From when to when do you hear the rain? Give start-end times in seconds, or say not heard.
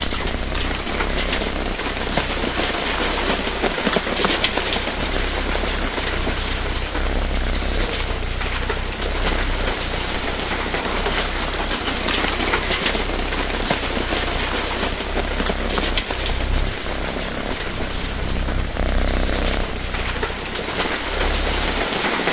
0.0-22.2.